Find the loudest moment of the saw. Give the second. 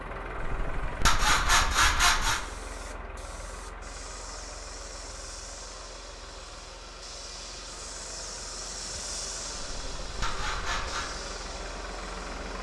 2 s.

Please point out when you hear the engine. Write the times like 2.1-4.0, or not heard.
0.0-12.5.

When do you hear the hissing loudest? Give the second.
9 s.